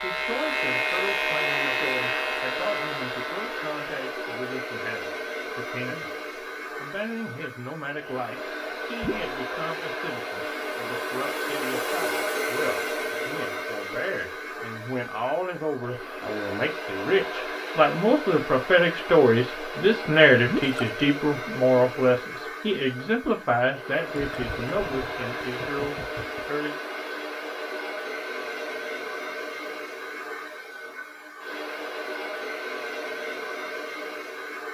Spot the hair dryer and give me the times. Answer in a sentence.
The hair dryer can be heard from 0.0 to 34.6 s.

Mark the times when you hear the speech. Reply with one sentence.
You can hear the speech from 0.0 to 26.8 s.